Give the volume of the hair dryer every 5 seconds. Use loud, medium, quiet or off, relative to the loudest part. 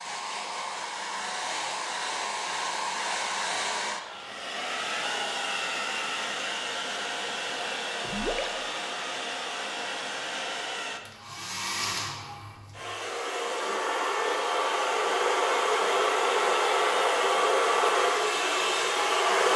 medium, medium, medium, loud.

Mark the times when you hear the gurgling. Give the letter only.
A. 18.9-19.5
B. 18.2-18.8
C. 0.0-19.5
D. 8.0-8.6
D.